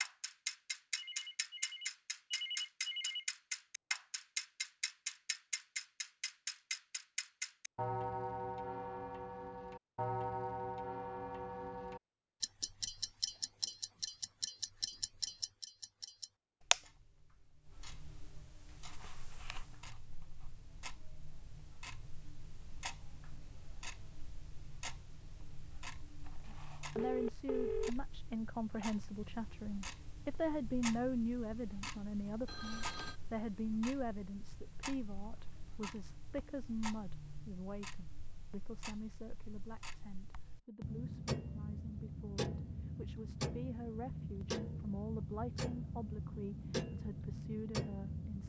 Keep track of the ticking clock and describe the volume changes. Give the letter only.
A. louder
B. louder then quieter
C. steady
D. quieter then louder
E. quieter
D.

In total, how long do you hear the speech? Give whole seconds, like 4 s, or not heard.
22 s.